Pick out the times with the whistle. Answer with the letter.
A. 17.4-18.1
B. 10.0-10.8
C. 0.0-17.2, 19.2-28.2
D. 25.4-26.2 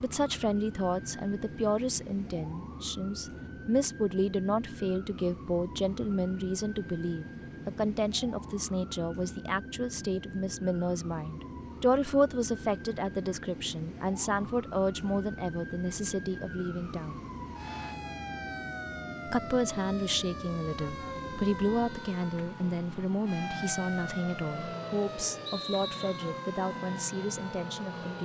D.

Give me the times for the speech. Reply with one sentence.
The speech can be heard from 0.0 to 17.2 s and from 19.2 to 28.2 s.